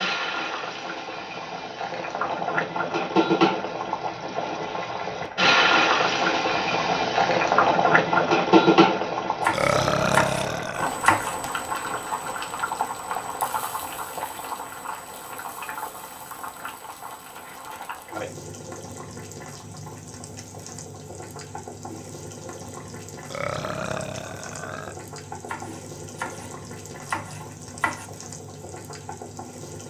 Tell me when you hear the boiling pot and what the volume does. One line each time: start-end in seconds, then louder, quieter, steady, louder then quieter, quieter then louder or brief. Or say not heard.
0.0-29.8 quieter.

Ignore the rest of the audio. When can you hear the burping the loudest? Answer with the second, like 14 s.
10 s.